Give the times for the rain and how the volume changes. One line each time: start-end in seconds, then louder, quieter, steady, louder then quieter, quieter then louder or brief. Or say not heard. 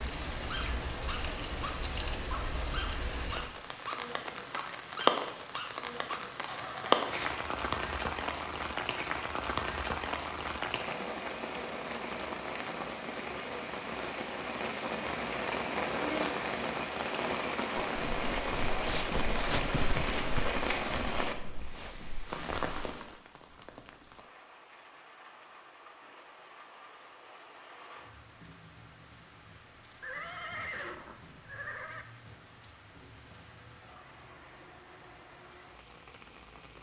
0.0-36.7 quieter.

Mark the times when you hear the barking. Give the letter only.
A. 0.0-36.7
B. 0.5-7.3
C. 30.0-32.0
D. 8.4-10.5
B.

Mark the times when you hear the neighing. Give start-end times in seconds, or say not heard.
30.0-32.0.